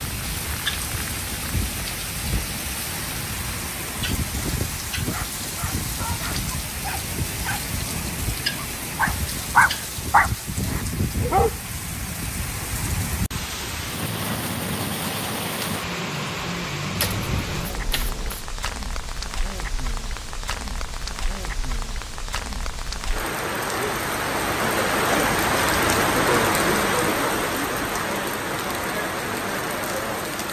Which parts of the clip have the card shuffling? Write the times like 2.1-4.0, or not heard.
16.9-18.4.